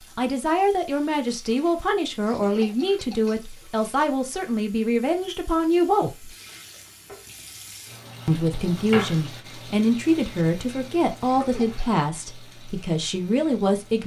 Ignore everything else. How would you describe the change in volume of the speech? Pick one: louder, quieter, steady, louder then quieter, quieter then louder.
steady.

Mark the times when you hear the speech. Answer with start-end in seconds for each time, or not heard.
0.1-6.3, 8.2-14.0.